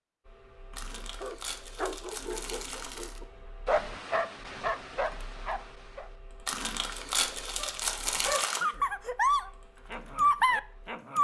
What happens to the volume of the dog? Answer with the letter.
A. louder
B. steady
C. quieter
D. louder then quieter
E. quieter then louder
A.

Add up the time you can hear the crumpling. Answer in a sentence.
The crumpling can be heard for 5 seconds in total.